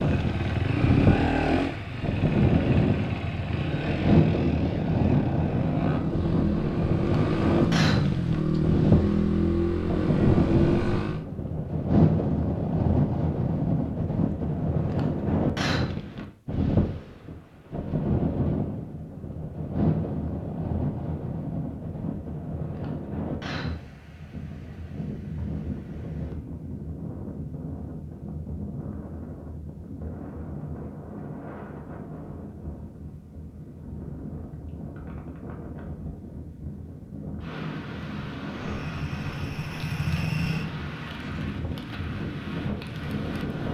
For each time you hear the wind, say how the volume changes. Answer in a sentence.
You can hear the wind from 0.0 to 43.6 s, getting quieter.